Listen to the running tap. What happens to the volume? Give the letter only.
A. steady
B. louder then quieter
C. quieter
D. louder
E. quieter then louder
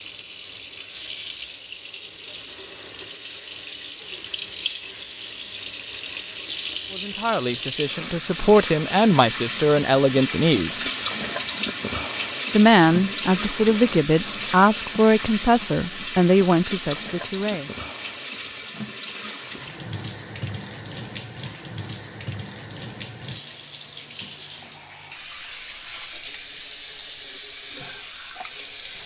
B.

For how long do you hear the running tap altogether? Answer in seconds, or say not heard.
29 s.